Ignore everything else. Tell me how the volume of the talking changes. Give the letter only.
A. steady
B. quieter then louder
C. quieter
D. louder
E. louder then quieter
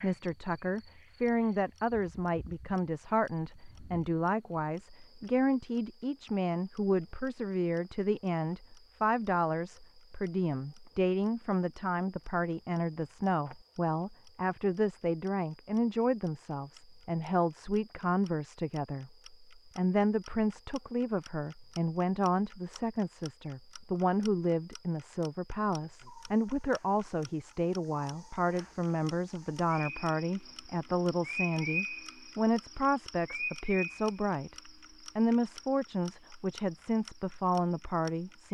A.